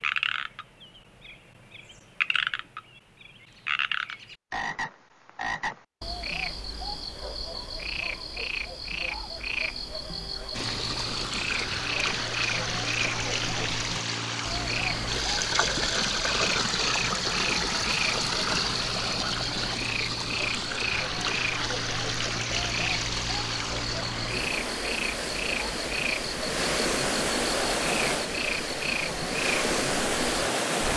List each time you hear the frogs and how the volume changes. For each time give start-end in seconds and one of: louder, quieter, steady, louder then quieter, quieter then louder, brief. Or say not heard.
0.0-30.9 steady.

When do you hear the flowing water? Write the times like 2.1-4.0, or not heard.
10.5-30.9.